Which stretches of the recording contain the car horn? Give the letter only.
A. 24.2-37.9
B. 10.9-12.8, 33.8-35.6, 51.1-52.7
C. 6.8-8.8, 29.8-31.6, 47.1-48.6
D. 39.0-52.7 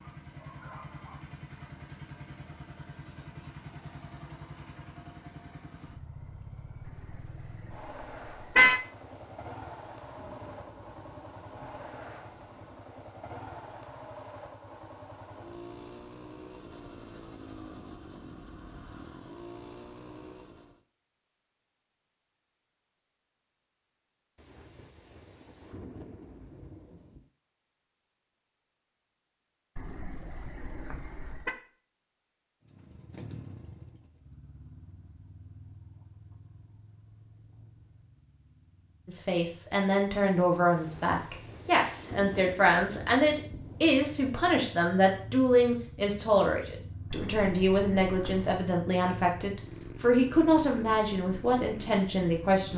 C.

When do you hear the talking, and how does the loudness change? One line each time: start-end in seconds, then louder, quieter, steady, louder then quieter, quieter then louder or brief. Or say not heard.
39.0-52.7 steady.